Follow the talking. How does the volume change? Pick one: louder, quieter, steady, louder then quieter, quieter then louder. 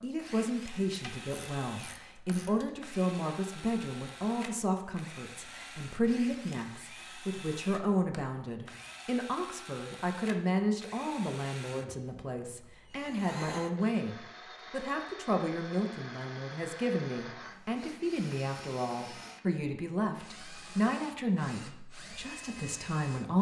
steady.